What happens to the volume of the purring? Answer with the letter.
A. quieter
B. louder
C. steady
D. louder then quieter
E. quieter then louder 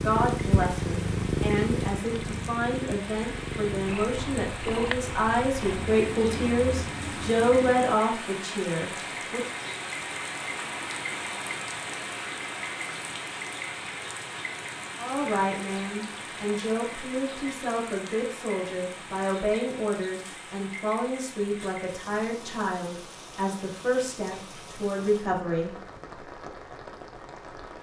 A.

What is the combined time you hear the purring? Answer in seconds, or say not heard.
8 s.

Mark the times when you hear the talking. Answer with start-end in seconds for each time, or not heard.
0.0-9.4, 14.9-25.8.